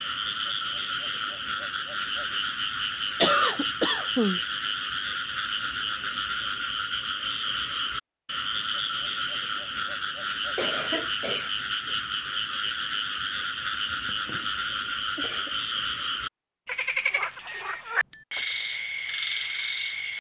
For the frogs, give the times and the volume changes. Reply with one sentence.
The frogs can be heard from 0.0 to 20.1 s, at a steady volume.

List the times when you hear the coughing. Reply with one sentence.
You can hear the coughing from 3.2 to 4.4 s, from 10.6 to 11.5 s, from 13.8 to 14.6 s and from 15.2 to 15.6 s.